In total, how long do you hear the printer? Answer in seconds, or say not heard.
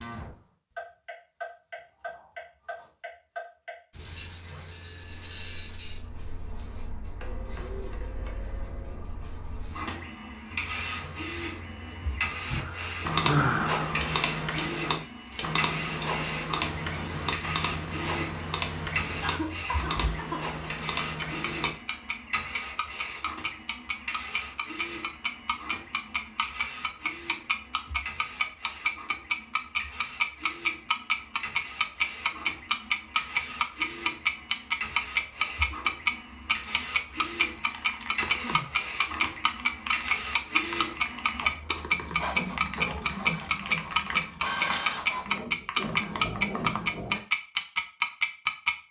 43 s.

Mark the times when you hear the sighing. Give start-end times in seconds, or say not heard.
12.4-13.9, 19.2-20.4, 38.4-38.9.